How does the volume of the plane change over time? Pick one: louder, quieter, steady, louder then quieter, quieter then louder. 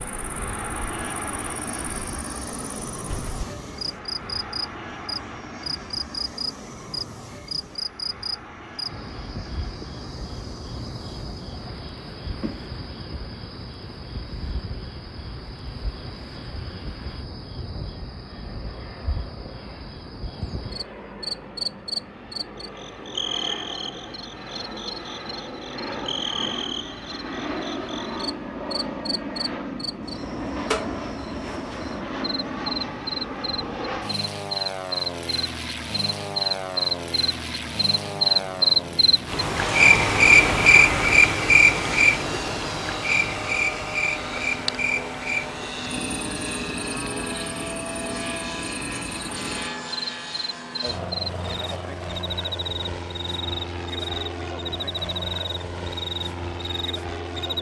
quieter then louder.